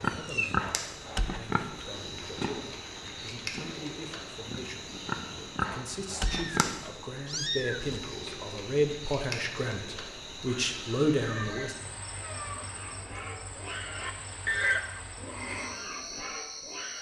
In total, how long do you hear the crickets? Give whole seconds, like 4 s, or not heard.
17 s.